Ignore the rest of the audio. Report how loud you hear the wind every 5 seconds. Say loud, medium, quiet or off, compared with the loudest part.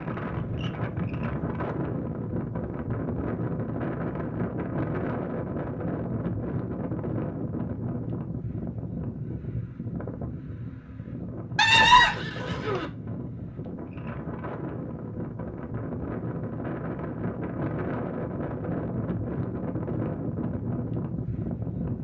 loud, loud, medium, loud, loud.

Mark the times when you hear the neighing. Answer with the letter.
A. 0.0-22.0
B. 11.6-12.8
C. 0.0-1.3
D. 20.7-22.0
B.